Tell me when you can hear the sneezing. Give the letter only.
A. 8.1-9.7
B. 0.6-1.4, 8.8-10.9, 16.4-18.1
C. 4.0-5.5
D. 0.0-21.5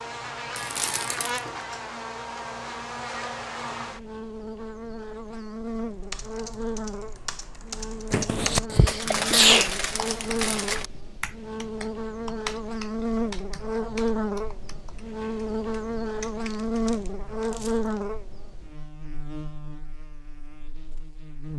A.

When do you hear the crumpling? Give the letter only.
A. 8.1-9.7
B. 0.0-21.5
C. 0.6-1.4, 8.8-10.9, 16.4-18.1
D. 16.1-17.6
C.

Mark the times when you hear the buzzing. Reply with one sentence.
The buzzing can be heard from 0.0 to 21.5 s.